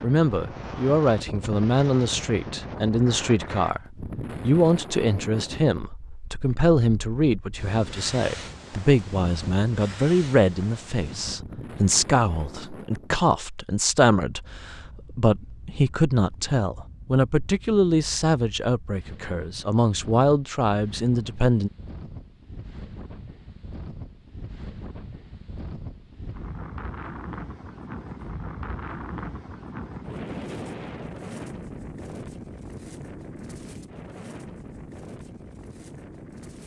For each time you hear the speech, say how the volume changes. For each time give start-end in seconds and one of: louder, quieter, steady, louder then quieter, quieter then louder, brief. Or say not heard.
0.0-21.7 steady.